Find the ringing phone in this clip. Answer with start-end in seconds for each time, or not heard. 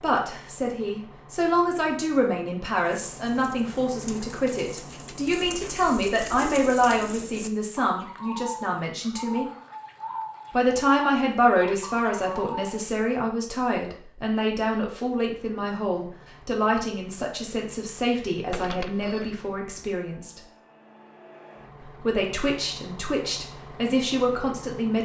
18.5-19.4.